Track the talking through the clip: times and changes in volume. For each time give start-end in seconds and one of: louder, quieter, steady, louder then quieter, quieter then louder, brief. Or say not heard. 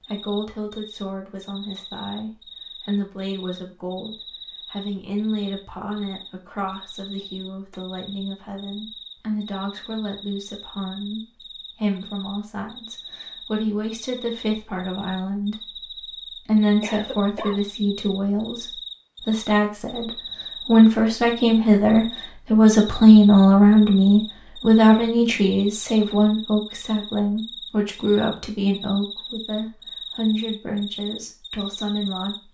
0.0-32.5 louder then quieter.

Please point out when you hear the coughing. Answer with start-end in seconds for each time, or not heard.
16.8-17.6.